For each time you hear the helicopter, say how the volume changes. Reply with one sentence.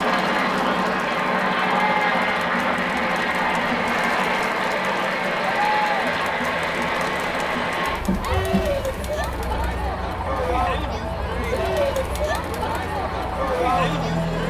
The helicopter can be heard from 0.0 to 14.4 s, getting quieter.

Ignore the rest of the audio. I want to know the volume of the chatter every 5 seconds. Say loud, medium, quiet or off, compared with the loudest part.
medium, loud, loud.